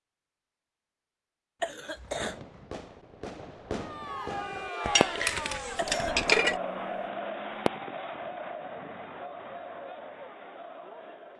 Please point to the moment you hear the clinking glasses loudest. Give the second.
6 s.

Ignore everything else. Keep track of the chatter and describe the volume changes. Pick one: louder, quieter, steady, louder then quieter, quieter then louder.
quieter.